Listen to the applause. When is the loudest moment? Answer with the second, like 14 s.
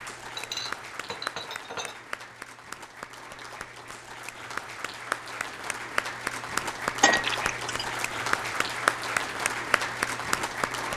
9 s.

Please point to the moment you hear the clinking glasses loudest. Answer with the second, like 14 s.
7 s.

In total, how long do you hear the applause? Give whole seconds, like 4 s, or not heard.
11 s.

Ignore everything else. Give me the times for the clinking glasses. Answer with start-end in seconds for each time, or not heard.
0.3-2.4, 7.0-7.8.